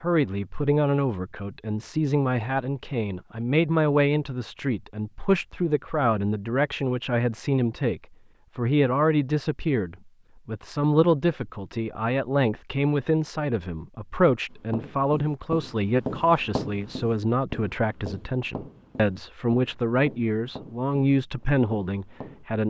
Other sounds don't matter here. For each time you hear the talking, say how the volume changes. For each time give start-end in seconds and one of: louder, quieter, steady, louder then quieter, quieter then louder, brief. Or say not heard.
0.0-22.6 steady.